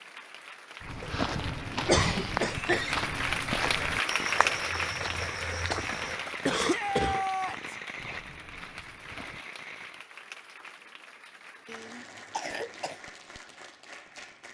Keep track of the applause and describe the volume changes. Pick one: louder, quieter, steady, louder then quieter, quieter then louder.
louder then quieter.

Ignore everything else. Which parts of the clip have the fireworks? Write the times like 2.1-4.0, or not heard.
4.2-10.1.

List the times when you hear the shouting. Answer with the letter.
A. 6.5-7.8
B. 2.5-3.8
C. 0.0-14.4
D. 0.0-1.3
A.